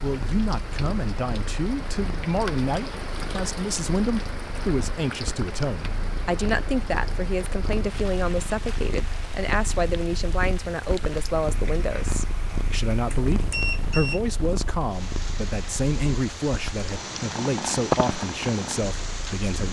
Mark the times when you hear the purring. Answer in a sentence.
You can hear the purring from 0.0 to 19.6 s.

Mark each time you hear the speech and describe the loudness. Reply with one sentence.
You can hear the speech from 0.0 to 19.6 s, at a steady volume.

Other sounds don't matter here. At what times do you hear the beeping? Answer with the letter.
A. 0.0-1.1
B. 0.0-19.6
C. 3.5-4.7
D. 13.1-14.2
D.